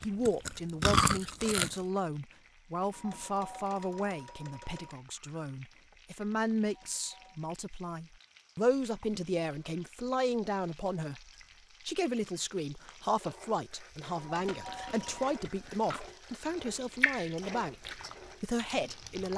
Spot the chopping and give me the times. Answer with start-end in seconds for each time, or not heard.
not heard.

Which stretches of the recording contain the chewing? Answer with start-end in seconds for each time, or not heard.
0.0-1.8, 14.3-16.1, 16.6-19.2.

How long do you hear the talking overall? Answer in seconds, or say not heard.
19 s.